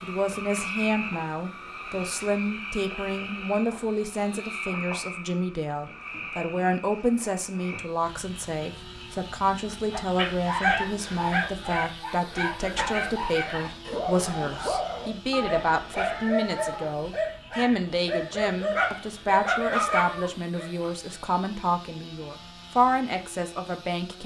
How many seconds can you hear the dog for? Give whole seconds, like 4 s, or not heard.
11 s.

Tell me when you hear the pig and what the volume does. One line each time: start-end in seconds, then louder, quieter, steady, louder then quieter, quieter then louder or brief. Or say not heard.
not heard.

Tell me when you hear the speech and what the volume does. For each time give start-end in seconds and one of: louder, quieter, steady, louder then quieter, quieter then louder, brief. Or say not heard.
0.0-24.2 steady.